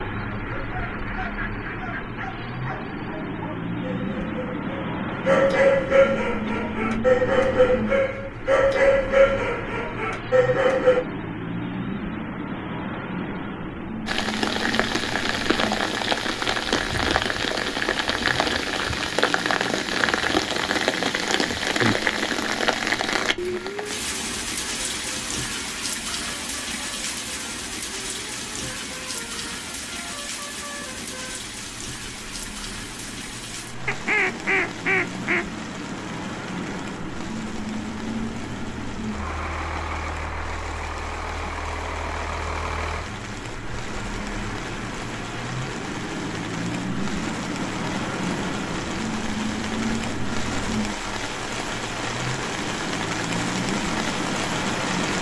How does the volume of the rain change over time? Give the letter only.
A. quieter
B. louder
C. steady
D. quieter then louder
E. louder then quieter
D.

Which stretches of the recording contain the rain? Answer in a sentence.
The rain can be heard from 14.1 to 55.1 s.